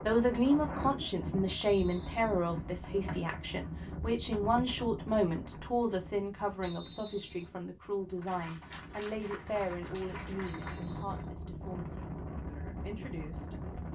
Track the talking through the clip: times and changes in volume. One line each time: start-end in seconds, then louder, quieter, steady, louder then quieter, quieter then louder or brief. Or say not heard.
0.0-13.9 quieter.